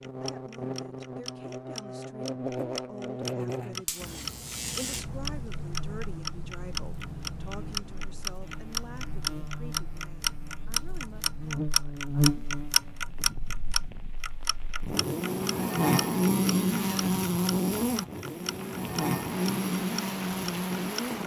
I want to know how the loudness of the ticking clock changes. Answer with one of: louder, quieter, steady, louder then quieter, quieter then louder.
louder then quieter.